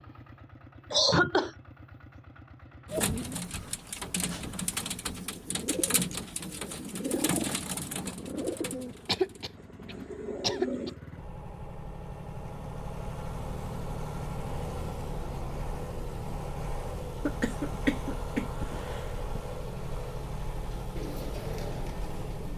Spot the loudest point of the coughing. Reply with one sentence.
The loudest moment of the coughing is at 1 second.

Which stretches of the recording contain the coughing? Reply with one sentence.
You can hear the coughing from 0.9 to 1.5 s, from 9.1 to 10.9 s and from 17.2 to 19.1 s.